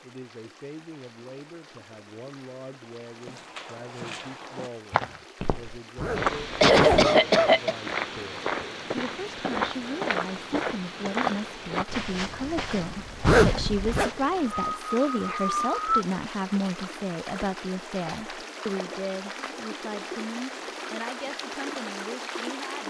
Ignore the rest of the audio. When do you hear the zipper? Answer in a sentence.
You can hear the zipper from 6.0 to 7.1 s and from 13.2 to 14.1 s.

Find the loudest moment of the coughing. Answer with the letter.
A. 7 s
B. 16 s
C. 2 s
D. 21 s
A.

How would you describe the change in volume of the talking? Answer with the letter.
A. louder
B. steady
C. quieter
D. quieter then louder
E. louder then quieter
E.